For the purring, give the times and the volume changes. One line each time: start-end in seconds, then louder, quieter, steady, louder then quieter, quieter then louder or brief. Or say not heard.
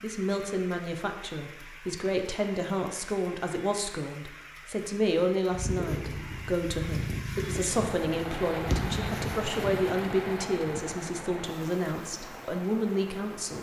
5.5-9.7 quieter then louder.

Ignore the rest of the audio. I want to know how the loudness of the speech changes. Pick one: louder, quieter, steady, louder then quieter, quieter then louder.
steady.